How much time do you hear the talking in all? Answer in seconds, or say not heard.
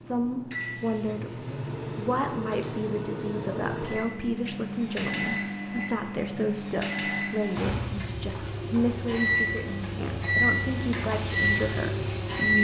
12 s.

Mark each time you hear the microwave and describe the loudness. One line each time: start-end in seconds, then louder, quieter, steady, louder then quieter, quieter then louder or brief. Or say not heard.
0.0-12.6 louder.